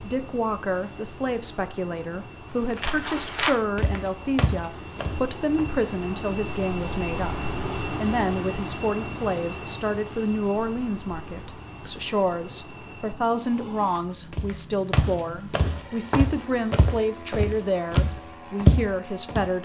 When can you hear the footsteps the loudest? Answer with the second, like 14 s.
19 s.